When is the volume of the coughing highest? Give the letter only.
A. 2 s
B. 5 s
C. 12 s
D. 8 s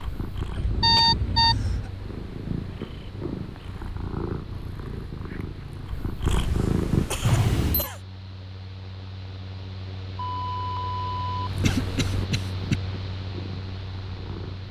C.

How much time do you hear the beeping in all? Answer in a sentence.
You can hear the beeping for 3 seconds altogether.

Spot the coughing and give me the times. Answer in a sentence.
You can hear the coughing from 0.6 to 1.9 s, from 6.6 to 8.0 s and from 11.6 to 12.8 s.